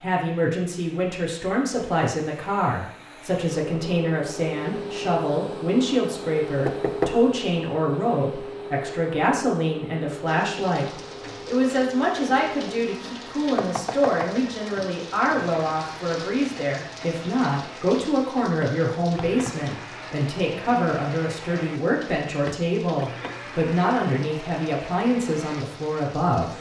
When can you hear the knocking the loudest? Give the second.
7 s.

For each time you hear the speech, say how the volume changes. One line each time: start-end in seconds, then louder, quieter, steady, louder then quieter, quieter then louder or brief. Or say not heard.
0.0-26.5 steady.